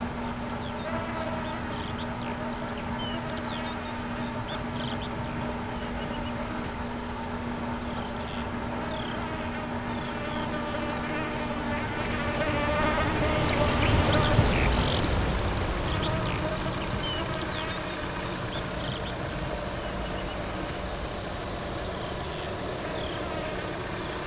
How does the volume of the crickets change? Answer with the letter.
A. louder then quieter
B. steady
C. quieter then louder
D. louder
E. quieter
A.